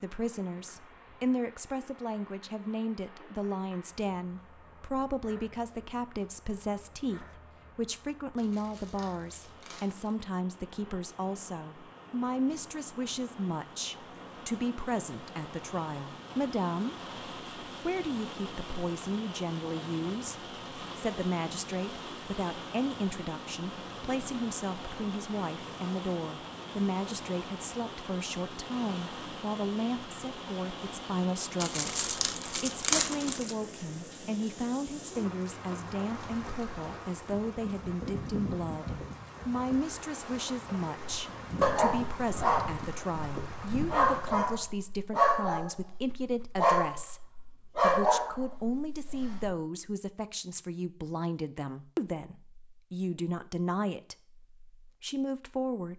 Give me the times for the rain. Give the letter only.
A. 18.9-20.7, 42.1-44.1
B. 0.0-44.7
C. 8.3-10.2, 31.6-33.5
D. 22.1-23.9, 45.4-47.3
B.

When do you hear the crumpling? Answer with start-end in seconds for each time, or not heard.
8.3-10.2, 31.6-33.5.